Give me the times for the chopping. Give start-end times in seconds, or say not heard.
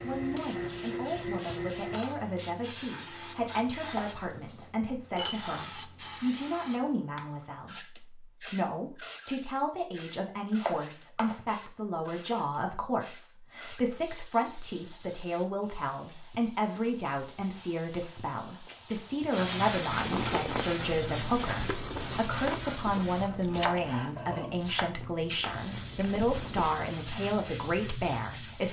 3.0-4.7, 10.6-11.4, 23.2-24.9.